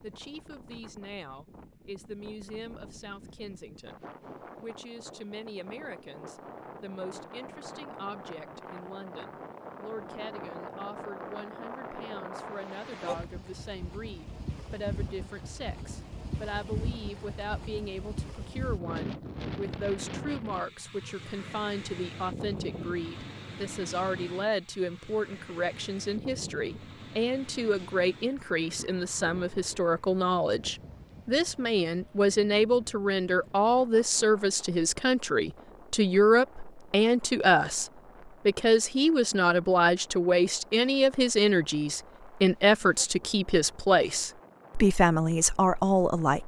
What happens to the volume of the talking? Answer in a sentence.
The volume of the talking goes up.